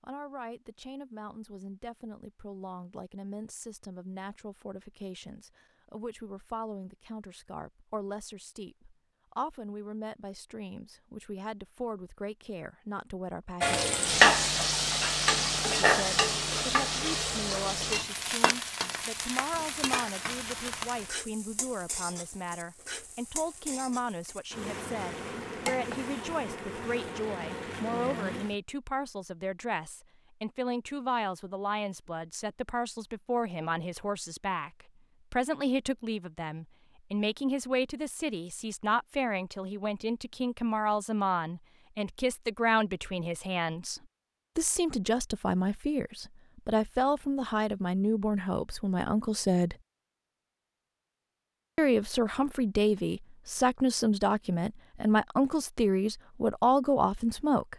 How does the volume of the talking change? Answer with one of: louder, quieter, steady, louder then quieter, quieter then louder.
louder.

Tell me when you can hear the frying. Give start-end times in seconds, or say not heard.
13.6-28.6.